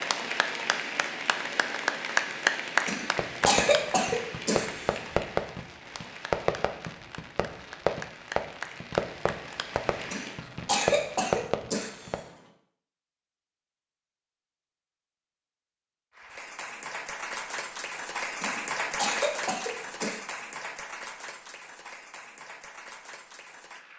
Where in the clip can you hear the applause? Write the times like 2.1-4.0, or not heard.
0.0-10.4, 16.1-23.9.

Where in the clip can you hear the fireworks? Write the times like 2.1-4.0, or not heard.
2.9-12.2.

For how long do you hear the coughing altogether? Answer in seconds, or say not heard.
6 s.